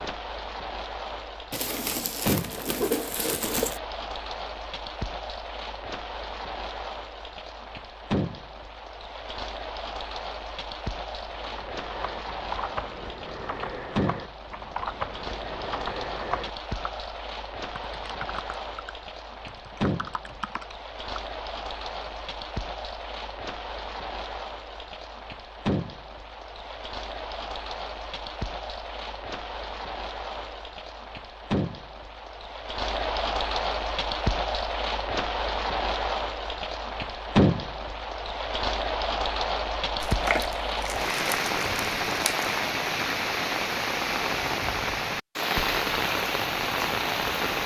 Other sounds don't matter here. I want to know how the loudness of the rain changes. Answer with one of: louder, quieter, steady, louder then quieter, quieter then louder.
louder.